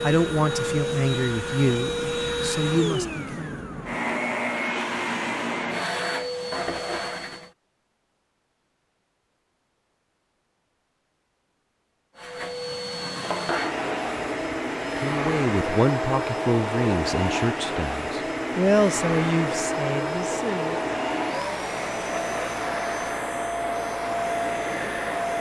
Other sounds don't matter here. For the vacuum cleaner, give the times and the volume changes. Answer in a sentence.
You can hear the vacuum cleaner from 0.0 to 7.5 s, at a steady volume; and from 12.2 to 25.3 s, at a steady volume.